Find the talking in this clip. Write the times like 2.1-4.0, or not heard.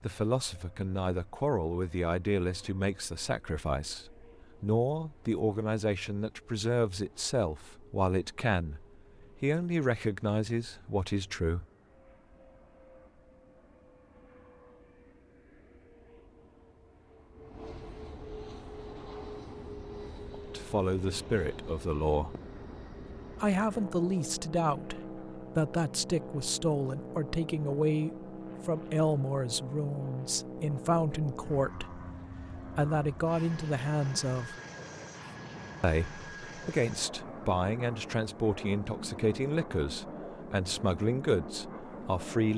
0.0-11.7, 20.5-22.4, 23.4-34.6, 35.8-42.5.